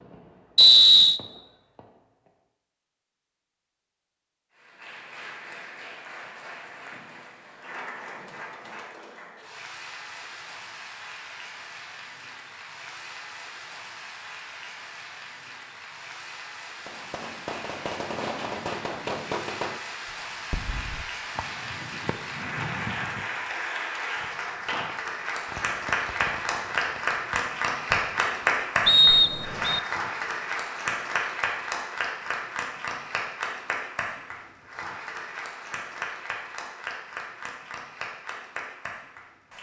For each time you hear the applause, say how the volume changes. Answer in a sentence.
You can hear the applause from 4.5 to 39.5 s, getting louder then quieter.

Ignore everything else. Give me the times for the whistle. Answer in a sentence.
The whistle can be heard from 0.6 to 1.2 s and from 28.9 to 29.8 s.